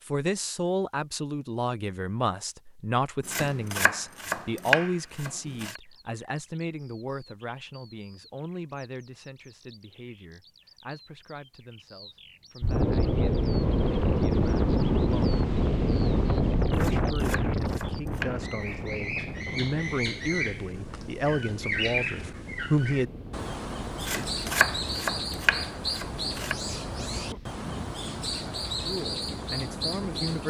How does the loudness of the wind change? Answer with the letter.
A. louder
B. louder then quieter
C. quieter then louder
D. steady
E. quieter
E.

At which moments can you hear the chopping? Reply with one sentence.
You can hear the chopping from 3.2 to 5.8 s, from 16.8 to 18.4 s and from 24.0 to 26.6 s.